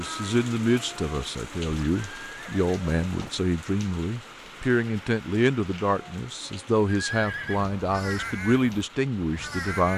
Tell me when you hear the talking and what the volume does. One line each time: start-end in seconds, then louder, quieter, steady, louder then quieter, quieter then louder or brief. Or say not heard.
0.0-9.9 steady.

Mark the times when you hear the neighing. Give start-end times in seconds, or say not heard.
1.6-3.4, 6.8-7.7.